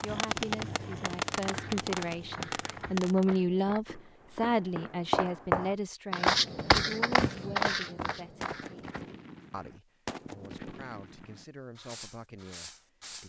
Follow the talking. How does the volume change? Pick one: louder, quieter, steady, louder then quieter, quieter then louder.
louder then quieter.